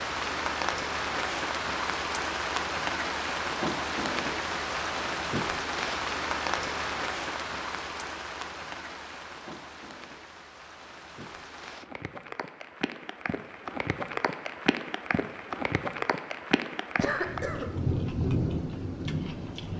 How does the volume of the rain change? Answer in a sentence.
The loudness of the rain goes down, then up.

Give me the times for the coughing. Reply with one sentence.
You can hear the coughing from 17.0 to 17.7 s.